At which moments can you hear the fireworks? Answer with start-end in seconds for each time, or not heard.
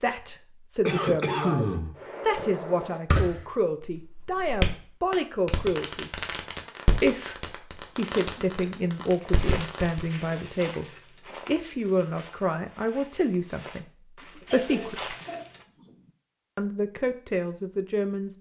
2.0-10.1.